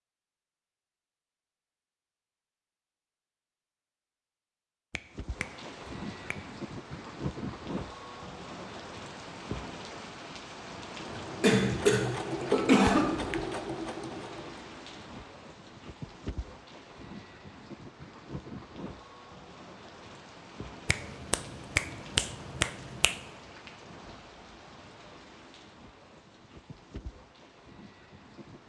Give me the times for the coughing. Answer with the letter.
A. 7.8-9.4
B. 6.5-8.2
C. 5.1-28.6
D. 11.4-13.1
D.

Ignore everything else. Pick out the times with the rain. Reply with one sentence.
You can hear the rain from 5.1 to 28.6 s.